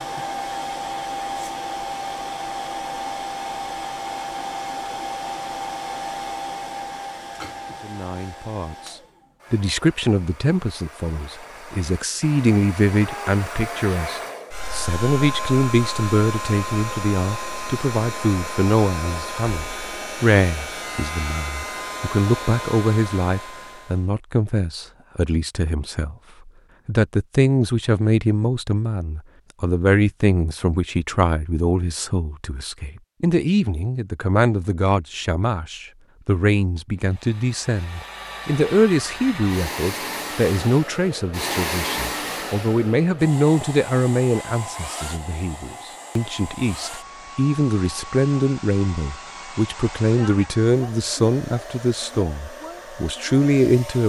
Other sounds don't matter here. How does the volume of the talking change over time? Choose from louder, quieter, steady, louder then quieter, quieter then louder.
steady.